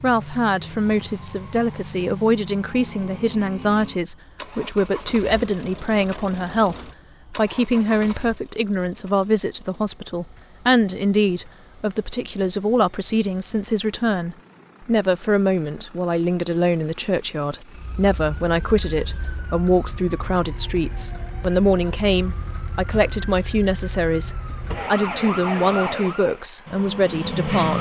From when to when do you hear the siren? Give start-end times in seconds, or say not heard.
17.7-27.7.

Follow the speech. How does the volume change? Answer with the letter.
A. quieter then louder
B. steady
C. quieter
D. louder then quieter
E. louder
B.